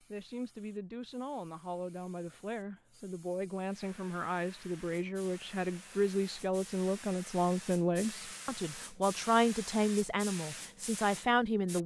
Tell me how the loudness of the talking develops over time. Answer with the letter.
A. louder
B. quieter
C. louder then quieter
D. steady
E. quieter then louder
A.